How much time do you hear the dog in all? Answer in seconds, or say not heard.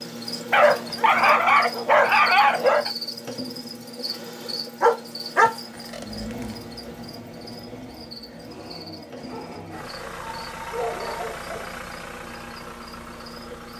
7 s.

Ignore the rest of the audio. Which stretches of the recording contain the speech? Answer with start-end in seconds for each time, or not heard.
not heard.